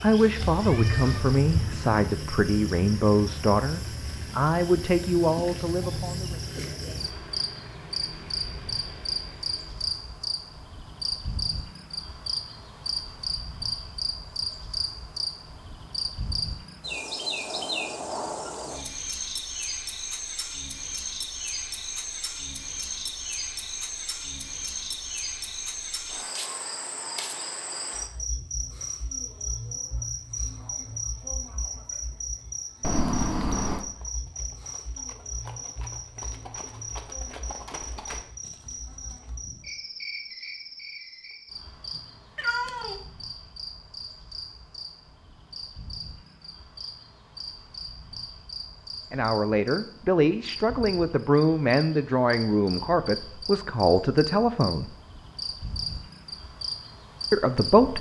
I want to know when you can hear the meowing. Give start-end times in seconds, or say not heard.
0.4-1.9, 32.8-33.9, 42.4-43.0.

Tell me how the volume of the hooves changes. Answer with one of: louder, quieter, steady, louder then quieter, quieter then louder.
louder then quieter.